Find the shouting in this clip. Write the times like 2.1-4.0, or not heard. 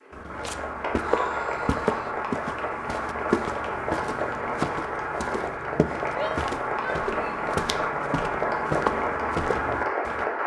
0.9-2.1, 6.2-7.5.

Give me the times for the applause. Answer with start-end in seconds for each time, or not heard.
0.0-10.4.